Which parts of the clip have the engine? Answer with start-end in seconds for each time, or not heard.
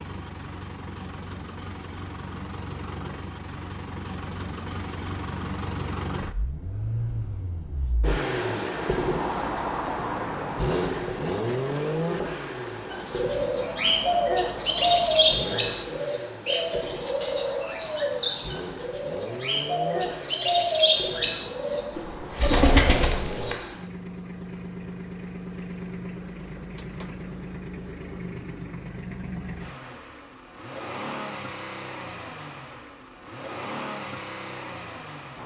0.0-35.4.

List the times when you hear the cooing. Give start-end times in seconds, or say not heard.
12.9-23.6.